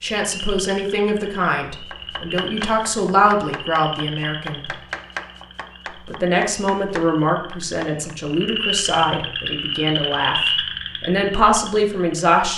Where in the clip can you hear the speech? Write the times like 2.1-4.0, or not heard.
0.0-4.7, 6.0-10.3, 11.0-12.5.